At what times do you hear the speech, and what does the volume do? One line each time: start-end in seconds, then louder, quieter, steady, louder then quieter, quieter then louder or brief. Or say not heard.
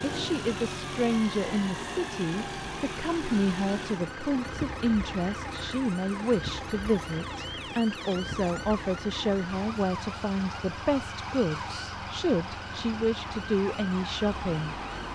0.0-14.8 steady.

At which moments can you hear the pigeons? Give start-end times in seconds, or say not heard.
not heard.